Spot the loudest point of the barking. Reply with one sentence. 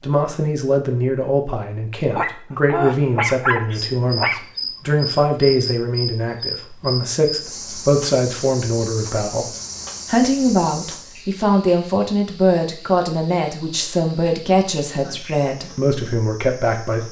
The volume of the barking peaks at 3 seconds.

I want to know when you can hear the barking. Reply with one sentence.
You can hear the barking from 2.1 to 4.4 s.